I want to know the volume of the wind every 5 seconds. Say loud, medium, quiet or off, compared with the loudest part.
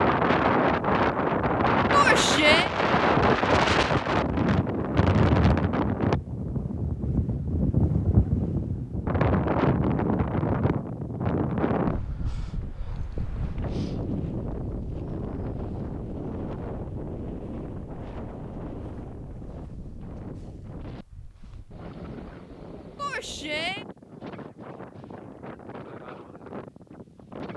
loud, loud, medium, quiet, quiet, quiet.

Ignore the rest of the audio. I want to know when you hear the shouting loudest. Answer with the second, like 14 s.
2 s.